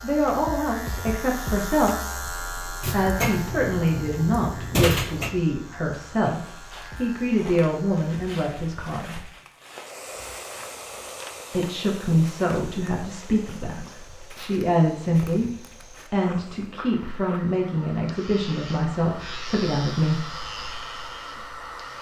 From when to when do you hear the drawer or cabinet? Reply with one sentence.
You can hear the drawer or cabinet from 2.8 to 5.3 s.